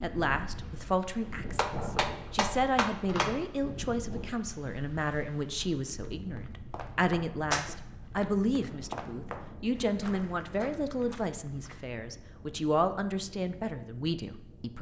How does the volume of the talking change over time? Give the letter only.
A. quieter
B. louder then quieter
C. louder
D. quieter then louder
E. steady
E.